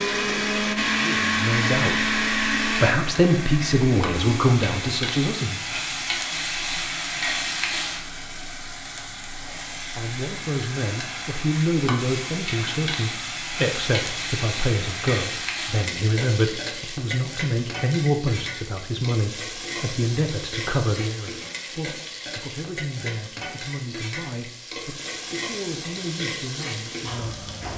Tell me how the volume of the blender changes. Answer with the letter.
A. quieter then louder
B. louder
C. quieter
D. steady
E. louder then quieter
C.